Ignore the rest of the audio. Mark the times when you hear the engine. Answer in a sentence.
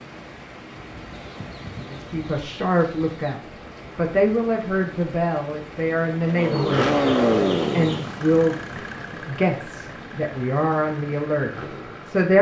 You can hear the engine from 6.2 to 12.3 s.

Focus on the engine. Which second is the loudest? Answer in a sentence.
The loudest moment of the engine is at 7 seconds.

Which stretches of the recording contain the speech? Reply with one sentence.
You can hear the speech from 1.9 to 7.0 s and from 7.7 to 12.3 s.